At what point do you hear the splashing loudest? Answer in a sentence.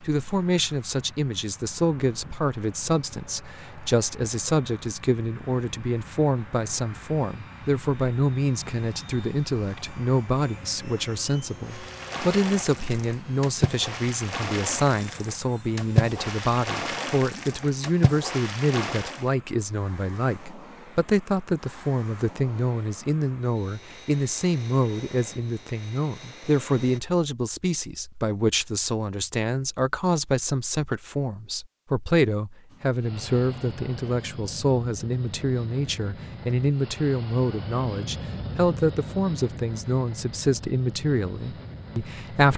The volume of the splashing peaks at 16 seconds.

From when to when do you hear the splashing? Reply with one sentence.
The splashing can be heard from 11.7 to 19.2 s.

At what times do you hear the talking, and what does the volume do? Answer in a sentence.
The talking can be heard from 0.0 to 42.5 s, at a steady volume.